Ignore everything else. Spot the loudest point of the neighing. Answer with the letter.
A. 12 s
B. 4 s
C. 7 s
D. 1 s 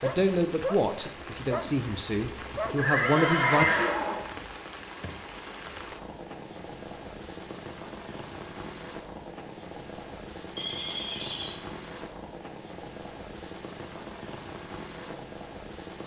B.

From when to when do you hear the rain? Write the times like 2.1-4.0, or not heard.
0.0-16.0.